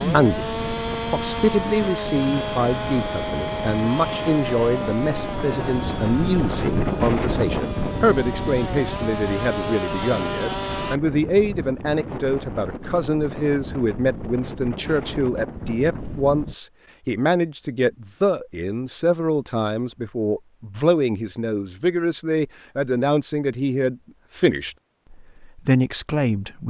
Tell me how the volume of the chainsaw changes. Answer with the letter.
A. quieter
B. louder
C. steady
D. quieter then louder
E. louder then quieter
D.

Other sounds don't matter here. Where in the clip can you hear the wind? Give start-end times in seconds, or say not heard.
0.1-16.6.